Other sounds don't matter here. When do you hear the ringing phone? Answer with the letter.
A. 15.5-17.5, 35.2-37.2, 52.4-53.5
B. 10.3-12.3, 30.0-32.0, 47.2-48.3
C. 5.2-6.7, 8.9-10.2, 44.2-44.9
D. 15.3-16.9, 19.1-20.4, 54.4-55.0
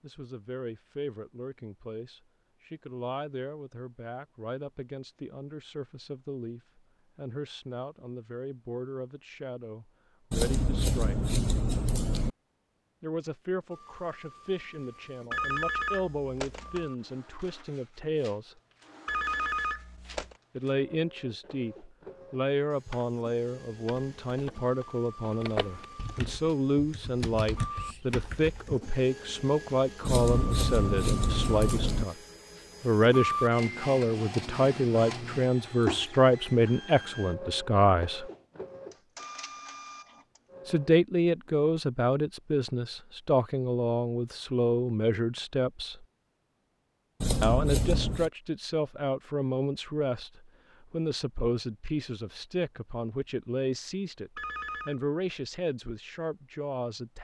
D.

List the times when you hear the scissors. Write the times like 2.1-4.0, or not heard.
10.3-12.3, 30.0-32.0, 47.2-48.3.